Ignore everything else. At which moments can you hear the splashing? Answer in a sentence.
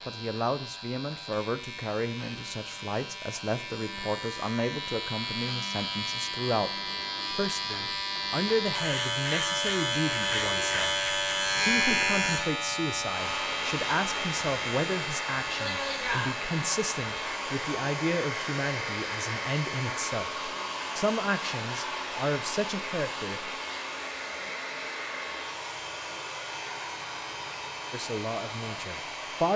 You can't hear the splashing here.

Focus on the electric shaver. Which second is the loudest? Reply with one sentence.
The loudest moment of the electric shaver is at 12 seconds.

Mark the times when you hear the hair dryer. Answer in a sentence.
The hair dryer can be heard from 13.1 to 29.5 s.